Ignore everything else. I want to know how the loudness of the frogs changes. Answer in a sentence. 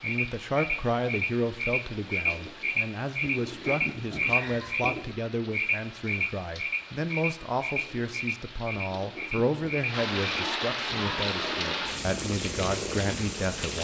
The loudness of the frogs goes down.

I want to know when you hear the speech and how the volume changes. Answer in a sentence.
You can hear the speech from 0.0 to 13.8 s, at a steady volume.